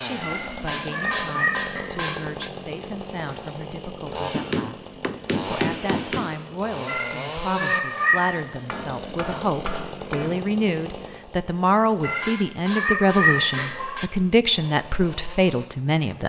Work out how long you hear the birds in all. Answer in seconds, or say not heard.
not heard.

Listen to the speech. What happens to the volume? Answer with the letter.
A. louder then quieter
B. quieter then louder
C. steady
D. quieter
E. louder
E.